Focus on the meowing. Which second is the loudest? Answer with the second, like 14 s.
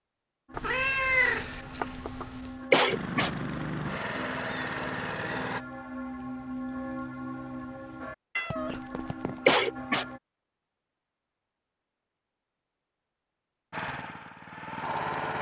1 s.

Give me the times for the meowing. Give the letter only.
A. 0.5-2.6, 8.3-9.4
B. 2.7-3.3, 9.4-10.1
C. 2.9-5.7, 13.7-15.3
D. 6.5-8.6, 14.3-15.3
A.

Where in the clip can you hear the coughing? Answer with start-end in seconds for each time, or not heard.
2.7-3.3, 9.4-10.1.